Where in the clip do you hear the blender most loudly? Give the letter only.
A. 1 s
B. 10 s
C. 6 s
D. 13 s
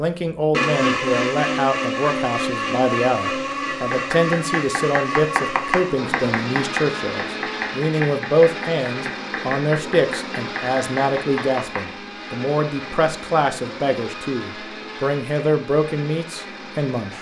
A.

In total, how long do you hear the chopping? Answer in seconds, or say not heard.
8 s.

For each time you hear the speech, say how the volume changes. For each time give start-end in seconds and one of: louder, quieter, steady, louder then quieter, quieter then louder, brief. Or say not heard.
0.0-17.1 steady.